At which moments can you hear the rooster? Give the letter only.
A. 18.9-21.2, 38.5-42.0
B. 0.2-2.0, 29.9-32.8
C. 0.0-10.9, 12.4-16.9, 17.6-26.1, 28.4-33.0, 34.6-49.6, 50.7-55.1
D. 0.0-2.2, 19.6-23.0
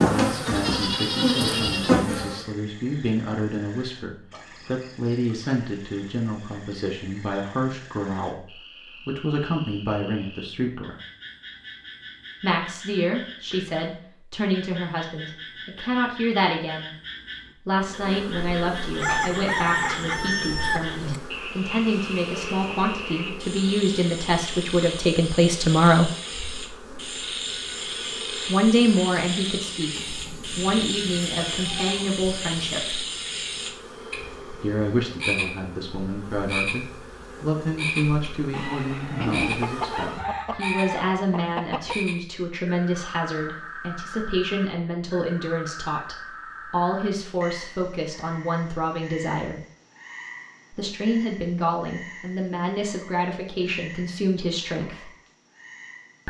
A.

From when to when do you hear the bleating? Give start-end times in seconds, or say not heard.
0.2-2.0, 29.9-32.8.